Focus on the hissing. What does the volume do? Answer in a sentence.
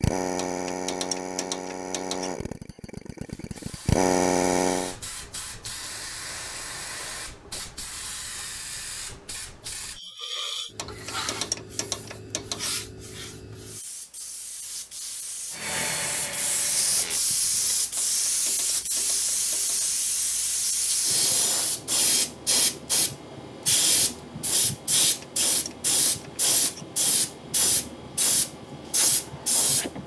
The volume of the hissing goes up.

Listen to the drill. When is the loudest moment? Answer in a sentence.
The volume of the drill peaks at 4 seconds.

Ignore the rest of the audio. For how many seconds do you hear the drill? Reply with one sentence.
You can hear the drill for 7 seconds altogether.